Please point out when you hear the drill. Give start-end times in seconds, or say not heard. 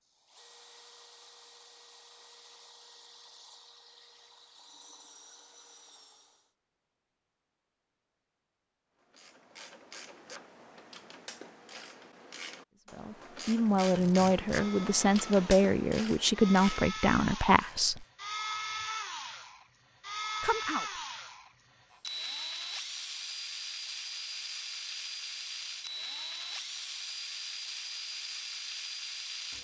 0.0-6.5, 13.7-29.5.